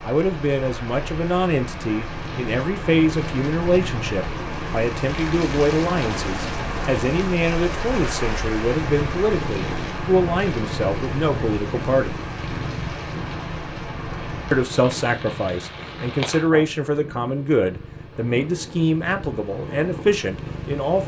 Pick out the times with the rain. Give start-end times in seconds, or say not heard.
0.0-16.5.